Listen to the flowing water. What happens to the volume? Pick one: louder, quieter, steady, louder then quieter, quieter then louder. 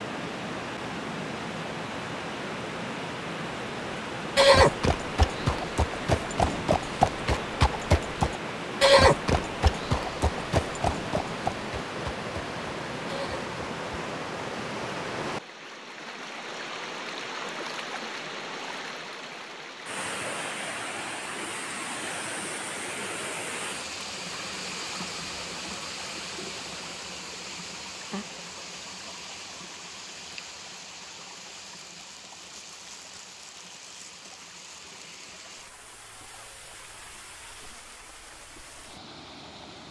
quieter.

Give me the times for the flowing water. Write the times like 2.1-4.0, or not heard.
0.0-39.8.